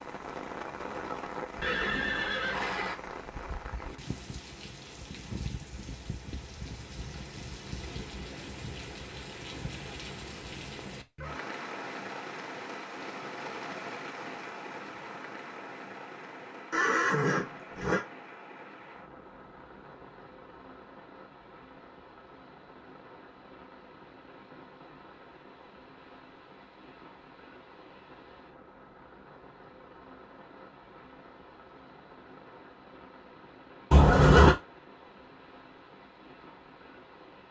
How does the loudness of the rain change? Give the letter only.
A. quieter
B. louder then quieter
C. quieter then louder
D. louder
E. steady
A.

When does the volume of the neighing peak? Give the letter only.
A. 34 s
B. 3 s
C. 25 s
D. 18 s
A.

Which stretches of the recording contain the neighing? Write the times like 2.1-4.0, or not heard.
1.6-3.0, 16.7-18.1, 33.9-34.5.